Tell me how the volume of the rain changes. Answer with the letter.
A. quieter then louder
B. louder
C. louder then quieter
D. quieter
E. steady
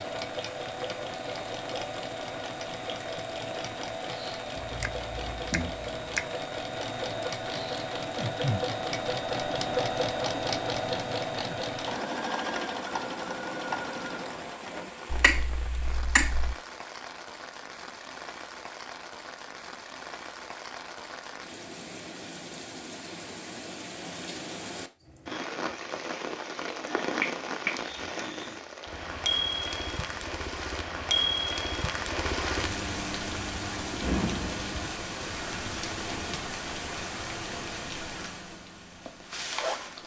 B.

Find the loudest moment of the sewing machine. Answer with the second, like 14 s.
10 s.